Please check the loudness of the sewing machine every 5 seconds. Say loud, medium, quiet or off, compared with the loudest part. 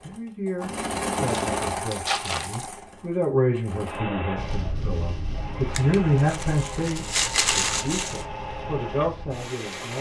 loud, medium.